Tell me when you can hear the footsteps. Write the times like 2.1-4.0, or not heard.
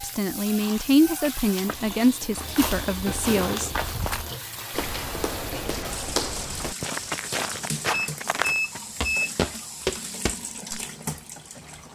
1.6-10.9.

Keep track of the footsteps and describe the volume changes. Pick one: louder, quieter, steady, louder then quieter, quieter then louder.
louder.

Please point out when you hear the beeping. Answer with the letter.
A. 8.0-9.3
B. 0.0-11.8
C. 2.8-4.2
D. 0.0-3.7
A.